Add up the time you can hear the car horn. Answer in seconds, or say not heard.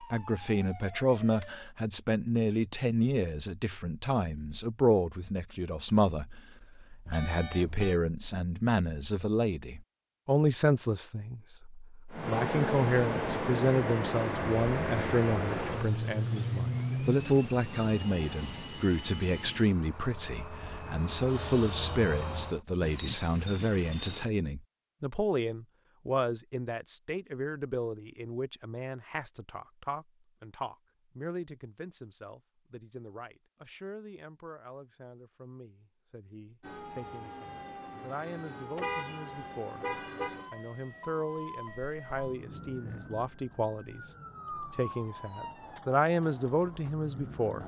4 s.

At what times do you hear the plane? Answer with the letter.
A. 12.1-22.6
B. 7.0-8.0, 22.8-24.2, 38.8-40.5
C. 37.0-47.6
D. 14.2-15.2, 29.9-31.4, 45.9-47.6
A.